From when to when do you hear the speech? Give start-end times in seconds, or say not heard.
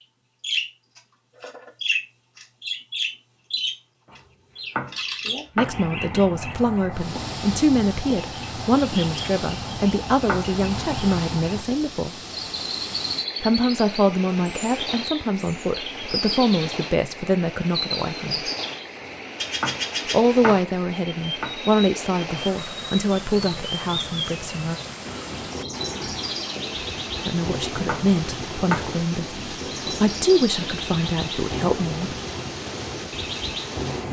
5.5-12.2, 13.4-18.5, 20.1-24.8, 27.2-32.1.